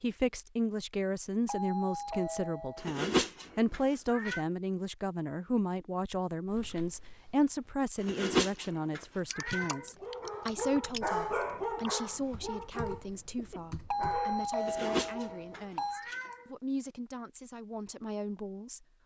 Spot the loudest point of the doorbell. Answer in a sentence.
The loudest moment of the doorbell is at 14 seconds.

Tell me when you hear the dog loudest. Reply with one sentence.
The loudest moment of the dog is at 11 seconds.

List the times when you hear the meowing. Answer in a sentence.
You can hear the meowing from 2.8 to 4.4 s, from 8.0 to 9.8 s and from 14.6 to 16.4 s.